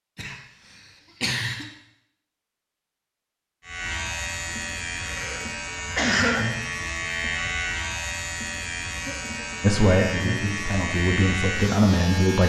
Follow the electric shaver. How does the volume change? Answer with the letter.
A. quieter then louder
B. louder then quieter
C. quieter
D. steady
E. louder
D.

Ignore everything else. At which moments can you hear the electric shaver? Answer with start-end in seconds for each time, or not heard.
3.6-12.4.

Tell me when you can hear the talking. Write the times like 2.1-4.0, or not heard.
9.6-12.4.